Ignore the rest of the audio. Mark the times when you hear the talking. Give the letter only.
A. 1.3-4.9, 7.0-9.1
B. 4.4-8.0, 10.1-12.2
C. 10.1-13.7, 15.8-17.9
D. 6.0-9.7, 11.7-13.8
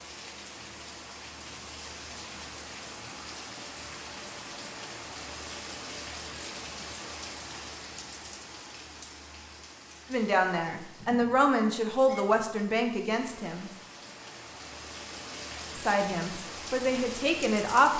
C.